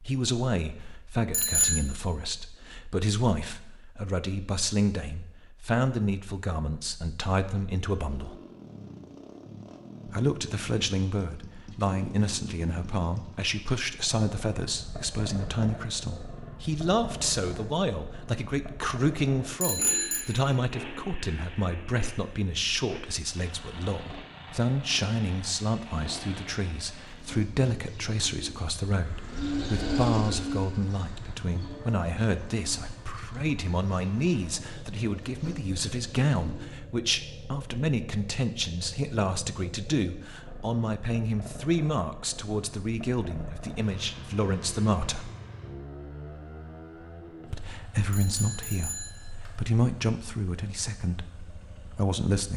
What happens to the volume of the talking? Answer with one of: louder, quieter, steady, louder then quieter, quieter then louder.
steady.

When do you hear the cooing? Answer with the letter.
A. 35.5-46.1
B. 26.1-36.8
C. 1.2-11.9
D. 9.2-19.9
B.